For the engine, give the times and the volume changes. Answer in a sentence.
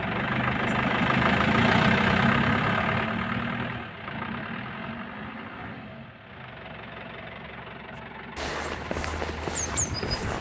You can hear the engine from 0.0 to 10.2 s, getting quieter.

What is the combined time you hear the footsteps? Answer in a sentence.
You can hear the footsteps for 2 seconds altogether.